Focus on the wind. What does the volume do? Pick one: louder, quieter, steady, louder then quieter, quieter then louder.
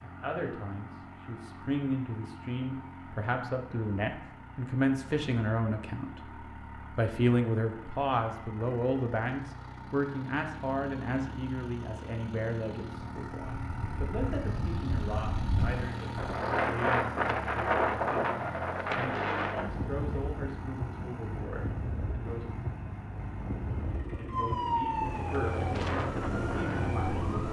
louder then quieter.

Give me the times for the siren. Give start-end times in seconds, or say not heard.
24.2-27.4.